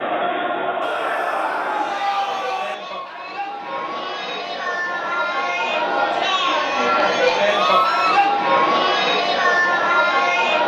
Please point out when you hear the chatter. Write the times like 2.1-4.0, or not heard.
0.0-10.6.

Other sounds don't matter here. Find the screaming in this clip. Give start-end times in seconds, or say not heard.
0.8-2.8, 7.6-8.2.